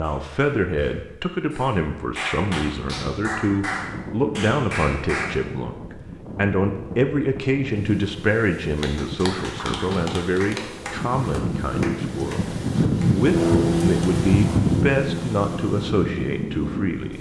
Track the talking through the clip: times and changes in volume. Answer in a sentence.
You can hear the talking from 0.0 to 17.1 s, at a steady volume.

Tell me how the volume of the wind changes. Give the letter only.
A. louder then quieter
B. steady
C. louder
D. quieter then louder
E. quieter
C.